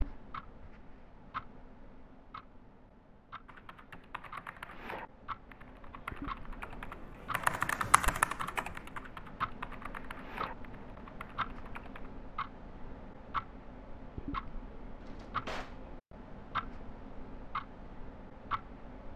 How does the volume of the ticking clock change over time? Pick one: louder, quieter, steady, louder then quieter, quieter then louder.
louder.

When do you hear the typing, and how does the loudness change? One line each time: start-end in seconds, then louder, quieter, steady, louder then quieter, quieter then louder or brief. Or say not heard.
3.5-12.1 louder then quieter.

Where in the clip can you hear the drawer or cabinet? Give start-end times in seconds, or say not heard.
15.0-15.8.